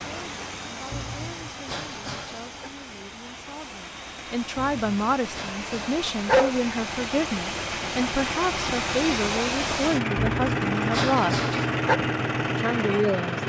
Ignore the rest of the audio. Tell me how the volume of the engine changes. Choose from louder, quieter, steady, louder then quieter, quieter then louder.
louder.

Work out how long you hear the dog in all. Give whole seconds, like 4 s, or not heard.
6 s.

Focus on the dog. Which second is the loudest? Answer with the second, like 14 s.
6 s.